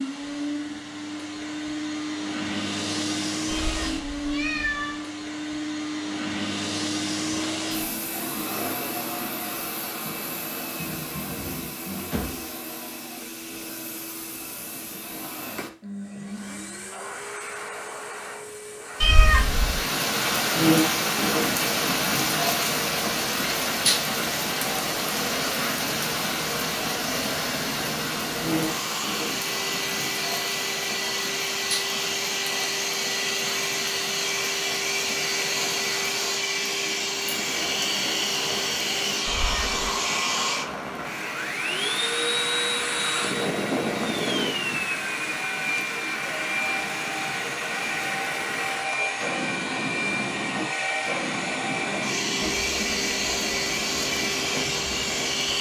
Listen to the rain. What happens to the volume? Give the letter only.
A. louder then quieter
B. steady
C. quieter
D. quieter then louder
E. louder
C.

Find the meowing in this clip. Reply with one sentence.
You can hear the meowing from 3.5 to 5.0 s, from 19.0 to 19.8 s and from 39.2 to 39.8 s.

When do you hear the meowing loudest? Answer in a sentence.
The volume of the meowing peaks at 19 seconds.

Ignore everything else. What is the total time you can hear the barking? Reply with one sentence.
You can't hear the barking here.